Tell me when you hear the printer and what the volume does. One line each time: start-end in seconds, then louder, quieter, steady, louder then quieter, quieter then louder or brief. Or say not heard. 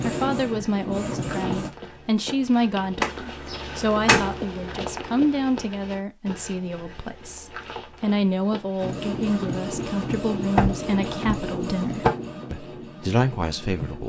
0.0-1.7 brief
8.8-14.0 quieter.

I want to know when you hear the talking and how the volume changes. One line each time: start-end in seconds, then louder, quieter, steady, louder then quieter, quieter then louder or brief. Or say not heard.
0.0-14.0 steady.